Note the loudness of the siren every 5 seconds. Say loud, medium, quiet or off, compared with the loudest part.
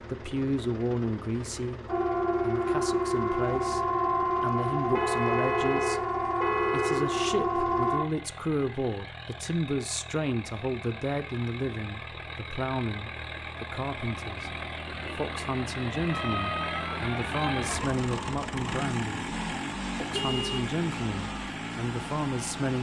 loud, loud, off, medium, off.